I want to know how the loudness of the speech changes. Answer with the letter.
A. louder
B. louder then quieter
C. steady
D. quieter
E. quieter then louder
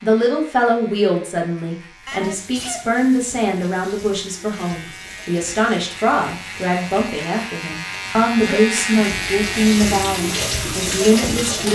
C.